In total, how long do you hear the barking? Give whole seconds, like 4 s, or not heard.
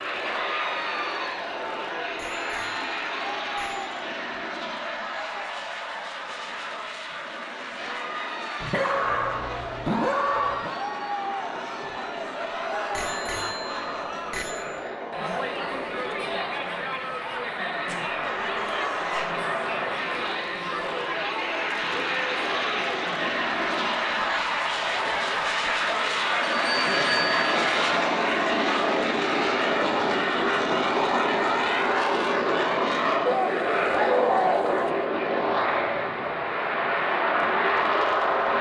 5 s.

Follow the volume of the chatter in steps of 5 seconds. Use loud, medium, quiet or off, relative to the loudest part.
loud, medium, loud, loud, loud, loud, off, off.